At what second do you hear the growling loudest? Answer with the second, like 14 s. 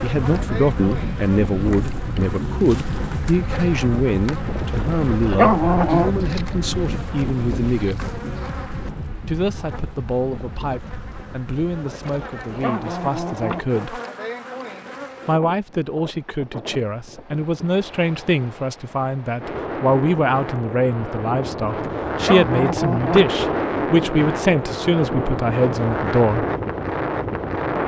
6 s.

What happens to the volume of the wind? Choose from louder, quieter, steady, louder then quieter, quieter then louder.
quieter then louder.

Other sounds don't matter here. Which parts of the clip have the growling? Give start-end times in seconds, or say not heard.
5.0-6.1, 12.2-13.8, 22.1-23.4.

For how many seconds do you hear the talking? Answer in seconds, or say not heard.
24 s.